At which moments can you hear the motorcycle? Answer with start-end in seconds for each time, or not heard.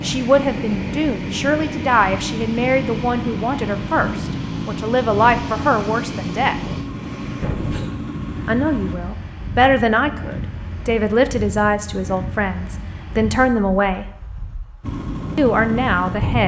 0.0-8.9, 14.8-16.3.